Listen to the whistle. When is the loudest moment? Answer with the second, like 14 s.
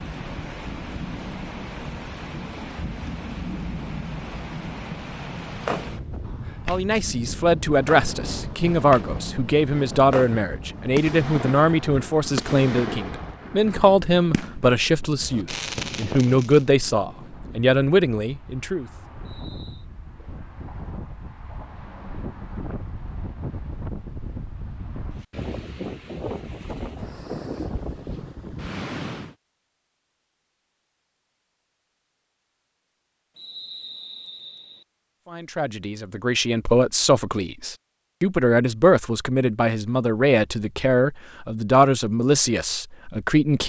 34 s.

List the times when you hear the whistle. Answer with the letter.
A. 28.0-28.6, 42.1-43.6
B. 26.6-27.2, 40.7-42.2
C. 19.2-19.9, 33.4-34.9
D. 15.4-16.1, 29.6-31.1
C.